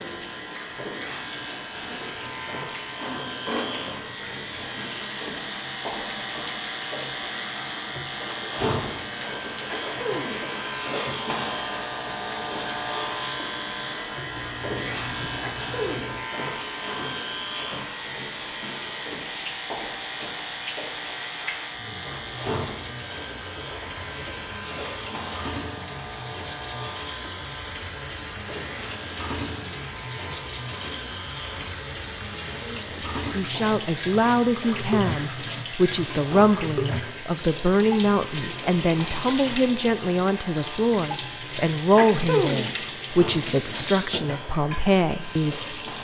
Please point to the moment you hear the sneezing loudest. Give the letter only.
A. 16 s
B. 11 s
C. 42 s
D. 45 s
C.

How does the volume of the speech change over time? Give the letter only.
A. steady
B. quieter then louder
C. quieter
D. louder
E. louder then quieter
A.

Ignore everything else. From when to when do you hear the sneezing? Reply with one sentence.
The sneezing can be heard from 9.7 to 10.3 s, from 15.4 to 16.1 s and from 42.0 to 42.6 s.